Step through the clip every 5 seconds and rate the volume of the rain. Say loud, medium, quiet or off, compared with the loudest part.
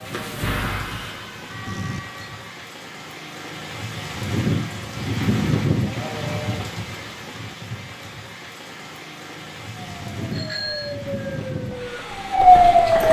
loud, loud, medium.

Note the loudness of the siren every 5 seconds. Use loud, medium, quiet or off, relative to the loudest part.
quiet, off, loud.